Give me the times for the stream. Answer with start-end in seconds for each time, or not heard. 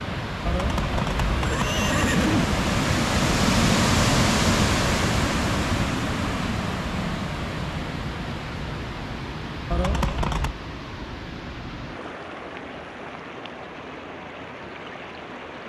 0.0-15.6.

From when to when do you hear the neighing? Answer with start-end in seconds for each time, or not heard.
0.5-2.5, 9.7-10.6.